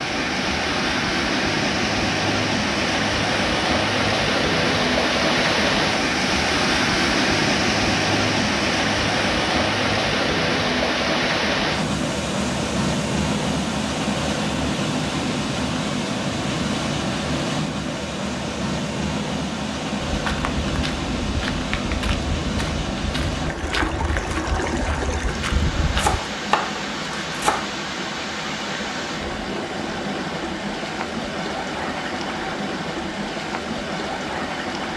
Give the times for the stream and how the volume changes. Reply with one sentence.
The stream can be heard from 0.0 to 34.9 s, getting quieter.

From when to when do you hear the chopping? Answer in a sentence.
The chopping can be heard from 25.9 to 27.7 s.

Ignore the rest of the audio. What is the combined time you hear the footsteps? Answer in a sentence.
The footsteps can be heard for 6 seconds in total.